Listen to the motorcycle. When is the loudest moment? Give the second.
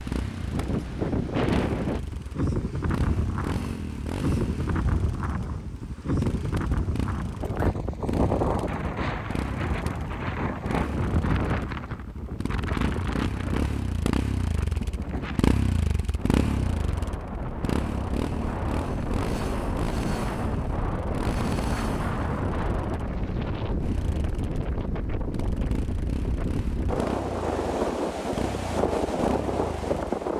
16 s.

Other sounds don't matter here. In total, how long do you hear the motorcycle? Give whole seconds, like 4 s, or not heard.
30 s.